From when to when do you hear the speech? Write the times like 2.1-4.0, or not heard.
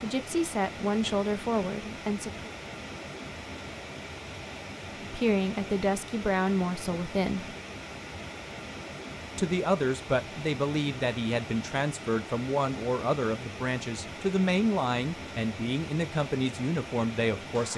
0.0-2.5, 5.0-7.5, 9.3-17.7.